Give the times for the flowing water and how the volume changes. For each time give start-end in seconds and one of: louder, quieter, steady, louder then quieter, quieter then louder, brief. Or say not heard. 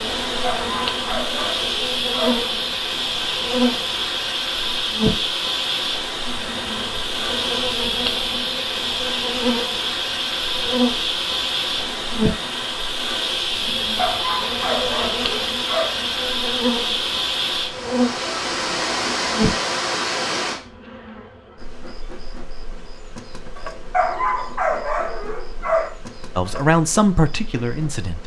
0.0-20.6 steady.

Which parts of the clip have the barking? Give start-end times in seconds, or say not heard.
0.4-2.4, 13.9-15.9, 23.9-25.9.